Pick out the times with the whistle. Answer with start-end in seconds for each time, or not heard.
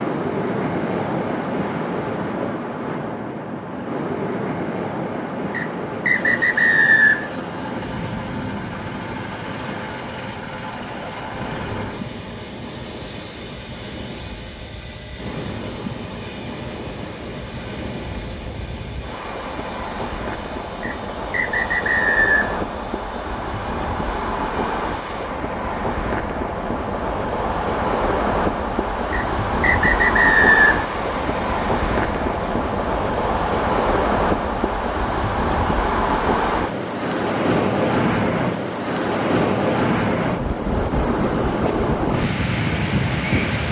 5.5-7.3, 20.8-22.4, 29.1-30.9.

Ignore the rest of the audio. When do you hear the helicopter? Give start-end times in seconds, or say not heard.
6.1-25.4, 29.9-32.6.